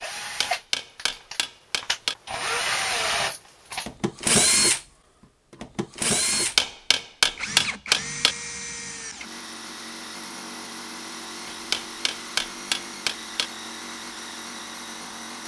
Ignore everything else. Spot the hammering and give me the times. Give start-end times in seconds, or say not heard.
0.1-2.1, 6.3-8.3, 11.4-13.5.